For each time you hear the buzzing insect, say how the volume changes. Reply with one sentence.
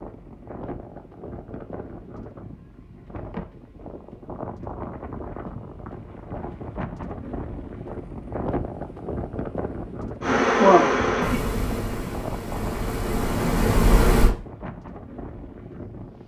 You can hear the buzzing insect from 10.2 to 14.3 s, getting quieter then louder.